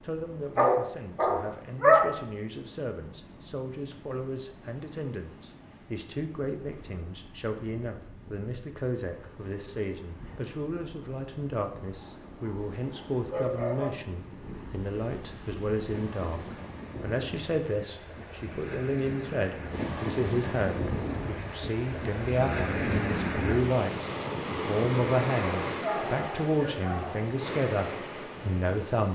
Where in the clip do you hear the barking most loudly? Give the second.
2 s.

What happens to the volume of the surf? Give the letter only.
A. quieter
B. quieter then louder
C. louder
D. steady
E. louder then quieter
C.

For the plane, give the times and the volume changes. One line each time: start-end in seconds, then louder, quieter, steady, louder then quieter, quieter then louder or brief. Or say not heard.
not heard.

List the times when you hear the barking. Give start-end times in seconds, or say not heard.
0.6-2.1, 12.0-13.9, 25.3-27.2.